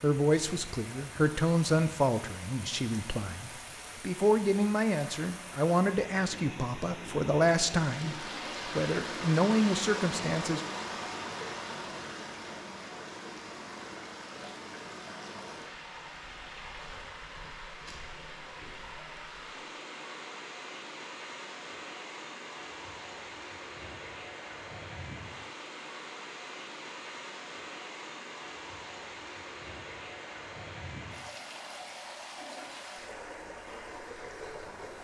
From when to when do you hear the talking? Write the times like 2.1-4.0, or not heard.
0.0-10.6.